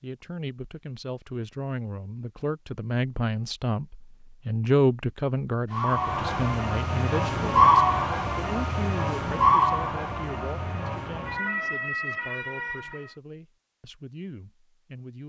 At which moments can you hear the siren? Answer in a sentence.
You can hear the siren from 5.7 to 13.2 s.